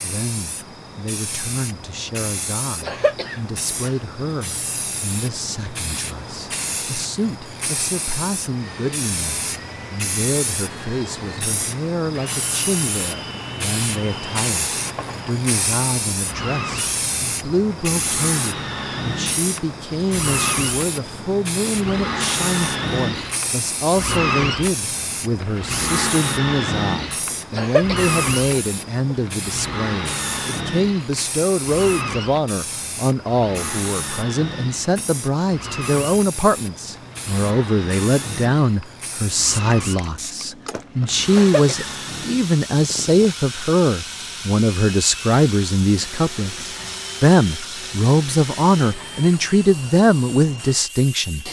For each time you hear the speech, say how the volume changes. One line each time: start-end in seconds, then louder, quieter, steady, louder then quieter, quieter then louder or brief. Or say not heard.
0.0-51.4 louder.